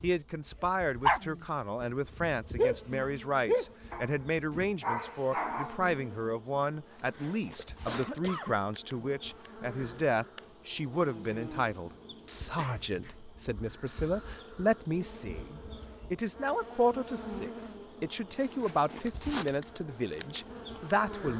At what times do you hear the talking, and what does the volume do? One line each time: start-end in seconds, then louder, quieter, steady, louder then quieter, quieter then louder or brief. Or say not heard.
0.0-21.3 steady.